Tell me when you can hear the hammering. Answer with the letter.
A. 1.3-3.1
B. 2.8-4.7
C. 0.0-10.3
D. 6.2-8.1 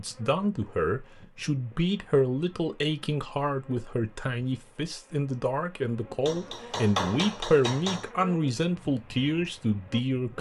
D.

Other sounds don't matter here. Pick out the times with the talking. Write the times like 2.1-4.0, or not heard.
0.0-10.3.